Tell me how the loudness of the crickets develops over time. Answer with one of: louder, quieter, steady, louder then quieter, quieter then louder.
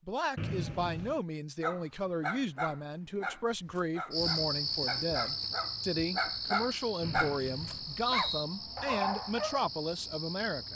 quieter.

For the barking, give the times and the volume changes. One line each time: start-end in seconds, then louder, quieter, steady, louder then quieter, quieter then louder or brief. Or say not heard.
1.6-9.7 quieter then louder.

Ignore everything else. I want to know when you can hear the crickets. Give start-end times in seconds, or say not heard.
4.1-10.7.